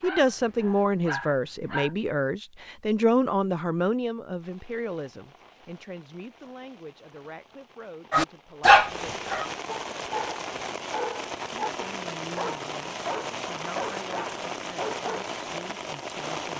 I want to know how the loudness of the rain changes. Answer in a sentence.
The volume of the rain goes up.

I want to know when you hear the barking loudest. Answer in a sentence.
The volume of the barking peaks at 9 seconds.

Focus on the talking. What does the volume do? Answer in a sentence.
The volume of the talking goes down.